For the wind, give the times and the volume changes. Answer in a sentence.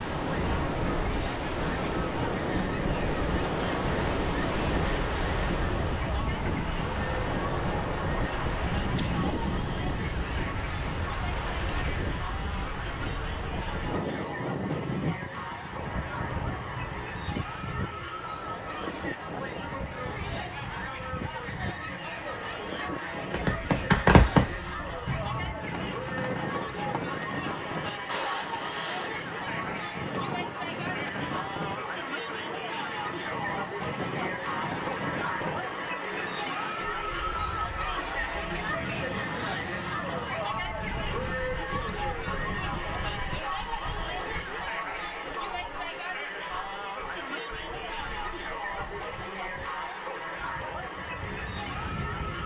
You can hear the wind from 0.0 to 52.4 s, getting quieter.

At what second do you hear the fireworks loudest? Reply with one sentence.
The loudest moment of the fireworks is at 24 seconds.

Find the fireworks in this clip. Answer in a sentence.
You can hear the fireworks from 23.3 to 29.1 s.